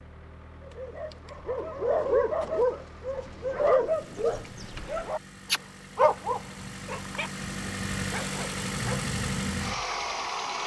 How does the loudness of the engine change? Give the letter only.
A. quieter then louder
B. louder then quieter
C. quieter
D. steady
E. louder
E.